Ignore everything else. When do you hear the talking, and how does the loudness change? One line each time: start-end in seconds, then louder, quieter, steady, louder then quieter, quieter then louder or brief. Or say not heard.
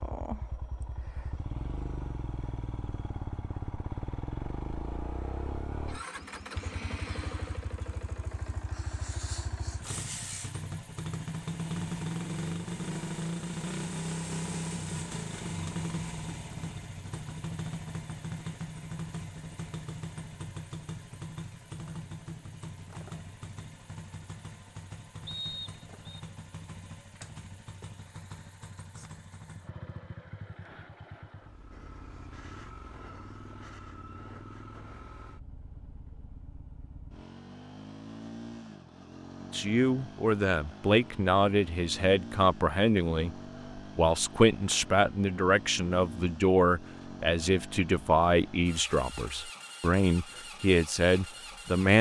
39.5-51.9 steady.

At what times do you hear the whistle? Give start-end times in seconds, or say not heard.
25.2-26.2.